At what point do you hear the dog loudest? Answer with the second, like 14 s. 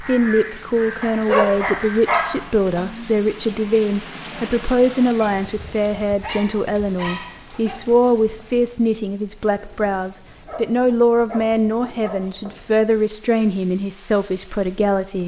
1 s.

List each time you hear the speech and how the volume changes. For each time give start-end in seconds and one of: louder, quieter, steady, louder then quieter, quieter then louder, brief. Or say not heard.
0.0-15.2 steady.